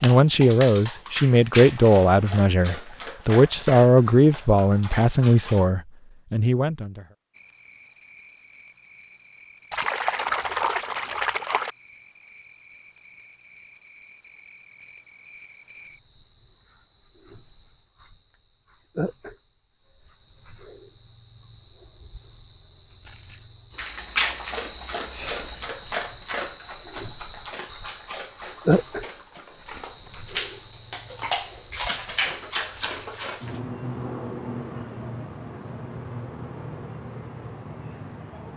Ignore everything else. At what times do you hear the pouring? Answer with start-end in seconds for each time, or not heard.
9.7-11.8.